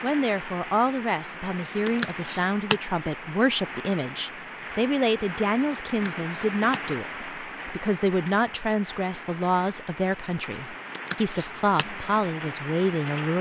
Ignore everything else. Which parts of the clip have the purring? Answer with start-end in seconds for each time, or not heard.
not heard.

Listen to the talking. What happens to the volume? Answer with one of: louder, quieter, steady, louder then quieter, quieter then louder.
steady.